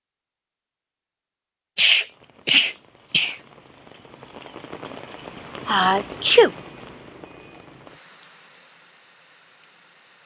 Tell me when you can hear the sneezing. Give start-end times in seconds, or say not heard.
1.8-3.4, 5.7-6.5.